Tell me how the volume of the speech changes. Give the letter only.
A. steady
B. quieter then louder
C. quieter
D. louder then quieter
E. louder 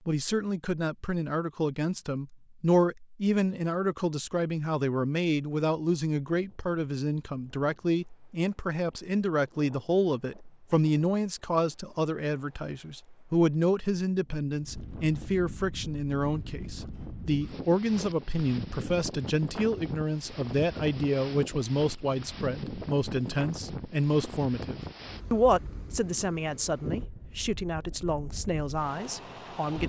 A.